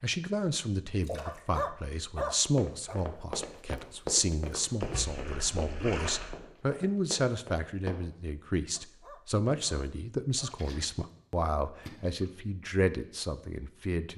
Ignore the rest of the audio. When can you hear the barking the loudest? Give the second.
2 s.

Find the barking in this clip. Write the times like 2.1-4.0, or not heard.
1.2-3.0, 8.7-10.6.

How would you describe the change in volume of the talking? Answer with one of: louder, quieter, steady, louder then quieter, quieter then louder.
steady.